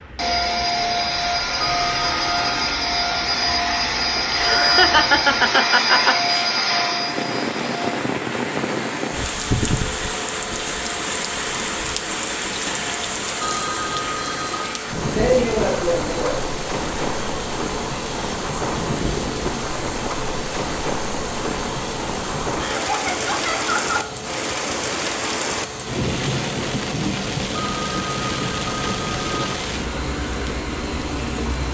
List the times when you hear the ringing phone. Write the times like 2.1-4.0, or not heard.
1.6-2.8, 13.4-14.8, 27.6-29.6.